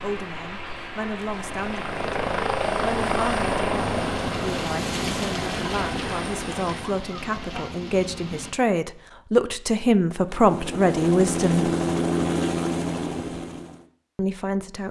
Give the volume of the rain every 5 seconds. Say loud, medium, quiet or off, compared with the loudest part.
loud, loud, off.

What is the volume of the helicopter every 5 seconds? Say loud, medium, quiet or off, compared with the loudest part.
loud, medium, loud.